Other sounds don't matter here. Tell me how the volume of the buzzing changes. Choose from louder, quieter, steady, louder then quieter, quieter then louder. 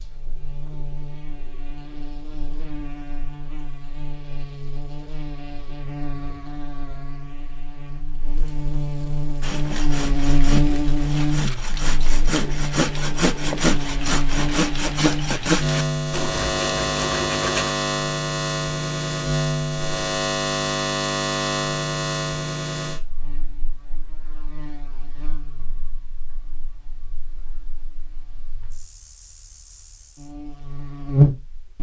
louder.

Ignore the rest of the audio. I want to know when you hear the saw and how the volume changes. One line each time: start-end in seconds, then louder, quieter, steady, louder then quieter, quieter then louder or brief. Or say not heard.
9.4-17.8 louder then quieter.